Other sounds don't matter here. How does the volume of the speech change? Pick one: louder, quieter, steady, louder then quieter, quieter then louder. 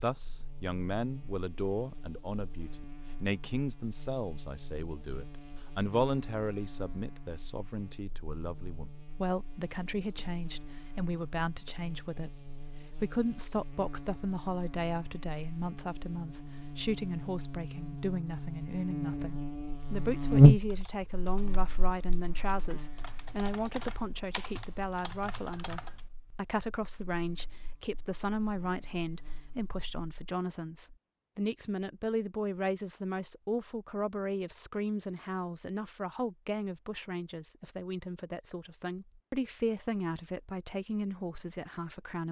steady.